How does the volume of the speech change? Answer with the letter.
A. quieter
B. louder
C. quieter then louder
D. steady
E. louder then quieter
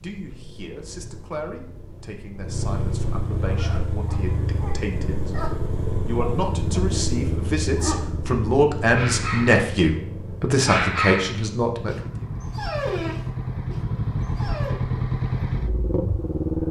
B.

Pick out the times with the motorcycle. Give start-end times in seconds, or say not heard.
0.0-16.6.